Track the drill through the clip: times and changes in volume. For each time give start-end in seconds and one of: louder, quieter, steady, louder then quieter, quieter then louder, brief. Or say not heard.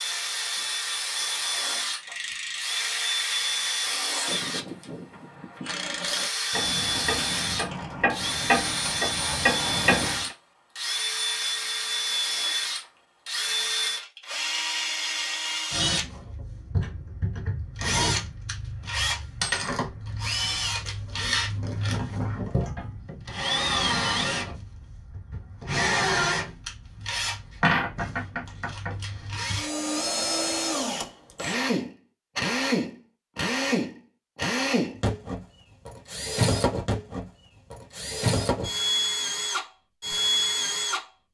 0.0-41.0 steady.